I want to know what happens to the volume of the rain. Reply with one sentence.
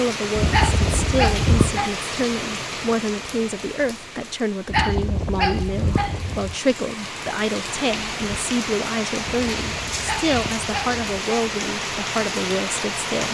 The loudness of the rain goes down, then up.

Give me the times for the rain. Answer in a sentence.
The rain can be heard from 0.0 to 13.2 s.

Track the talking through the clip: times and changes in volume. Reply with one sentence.
You can hear the talking from 0.0 to 13.2 s, at a steady volume.